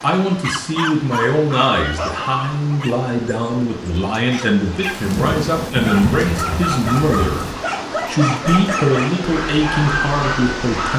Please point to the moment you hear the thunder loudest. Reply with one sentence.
The volume of the thunder peaks at 6 seconds.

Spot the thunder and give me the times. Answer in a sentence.
You can hear the thunder from 4.8 to 7.5 s.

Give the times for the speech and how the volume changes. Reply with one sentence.
You can hear the speech from 0.0 to 7.5 s, at a steady volume; and briefly from 8.1 to 10.9 s.